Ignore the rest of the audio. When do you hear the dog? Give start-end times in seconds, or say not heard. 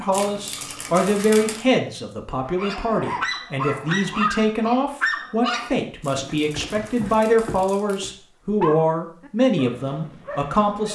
2.5-10.9.